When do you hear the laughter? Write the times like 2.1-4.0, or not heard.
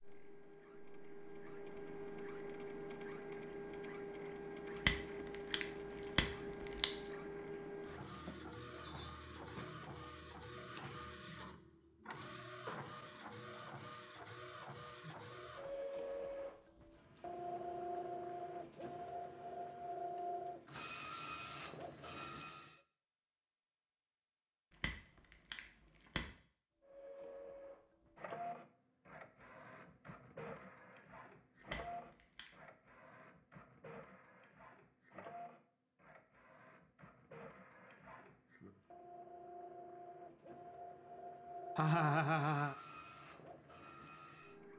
41.8-42.8.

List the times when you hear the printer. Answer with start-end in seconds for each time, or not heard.
0.0-22.8, 26.8-44.7.